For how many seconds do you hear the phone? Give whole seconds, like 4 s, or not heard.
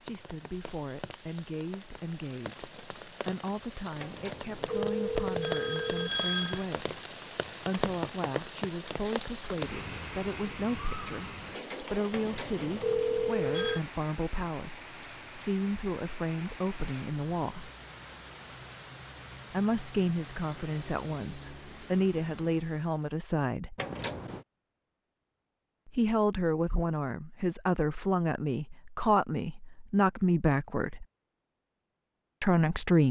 5 s.